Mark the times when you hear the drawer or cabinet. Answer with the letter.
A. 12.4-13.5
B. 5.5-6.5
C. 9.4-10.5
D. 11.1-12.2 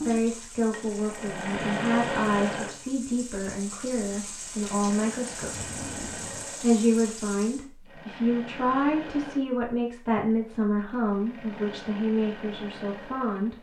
B.